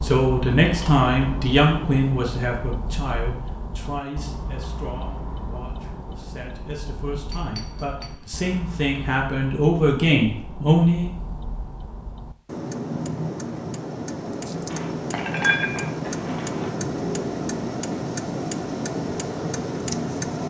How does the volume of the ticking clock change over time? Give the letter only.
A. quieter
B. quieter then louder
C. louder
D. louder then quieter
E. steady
B.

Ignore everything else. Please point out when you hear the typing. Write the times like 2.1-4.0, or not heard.
not heard.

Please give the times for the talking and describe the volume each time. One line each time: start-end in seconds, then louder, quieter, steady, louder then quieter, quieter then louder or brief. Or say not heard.
0.0-11.1 quieter then louder.